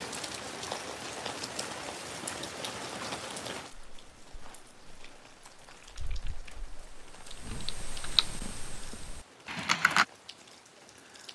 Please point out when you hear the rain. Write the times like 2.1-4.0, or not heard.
0.0-11.3.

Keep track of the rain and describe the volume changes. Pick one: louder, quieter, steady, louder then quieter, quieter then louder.
quieter.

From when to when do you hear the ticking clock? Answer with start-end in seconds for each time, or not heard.
not heard.